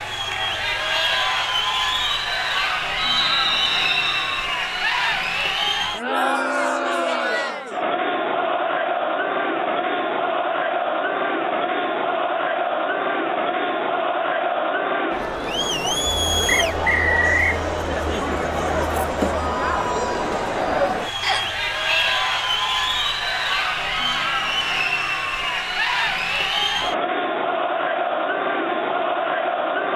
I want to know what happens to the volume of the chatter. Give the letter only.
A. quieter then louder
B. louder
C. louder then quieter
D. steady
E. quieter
D.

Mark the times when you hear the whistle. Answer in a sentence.
You can hear the whistle from 3.0 to 4.5 s, from 16.6 to 17.6 s and from 21.2 to 22.1 s.